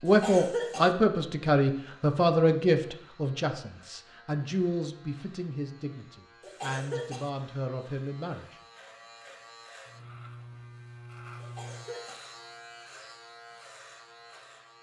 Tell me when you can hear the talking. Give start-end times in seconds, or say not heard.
0.0-8.6.